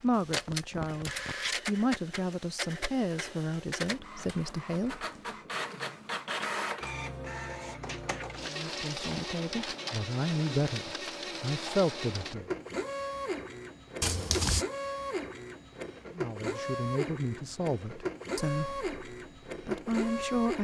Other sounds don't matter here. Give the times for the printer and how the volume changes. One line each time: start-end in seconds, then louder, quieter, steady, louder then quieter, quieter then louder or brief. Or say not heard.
0.0-20.5 steady.